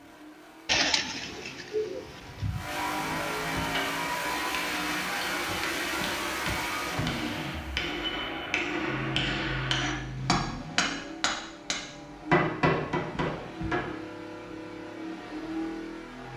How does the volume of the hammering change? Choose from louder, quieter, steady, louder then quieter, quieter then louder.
louder.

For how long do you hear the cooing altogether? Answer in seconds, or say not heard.
2 s.